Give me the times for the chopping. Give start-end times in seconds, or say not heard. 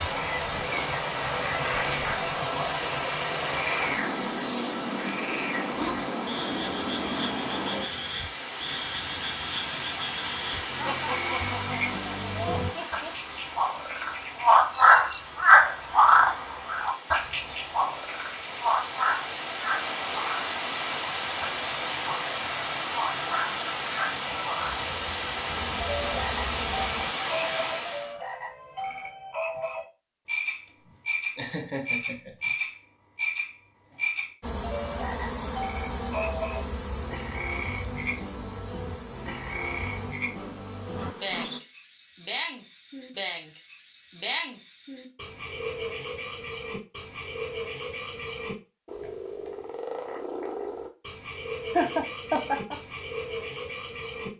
not heard.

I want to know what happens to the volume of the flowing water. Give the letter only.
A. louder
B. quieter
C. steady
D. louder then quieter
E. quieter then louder
E.